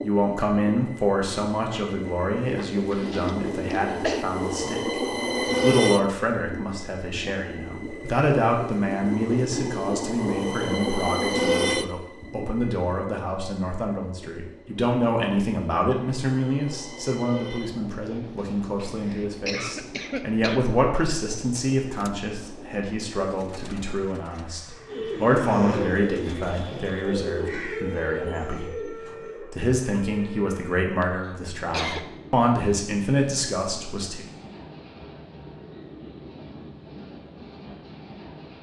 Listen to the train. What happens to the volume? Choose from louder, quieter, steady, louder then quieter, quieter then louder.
quieter.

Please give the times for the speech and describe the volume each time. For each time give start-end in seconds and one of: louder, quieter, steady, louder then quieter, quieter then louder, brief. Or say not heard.
0.0-5.0 quieter
5.6-34.2 steady.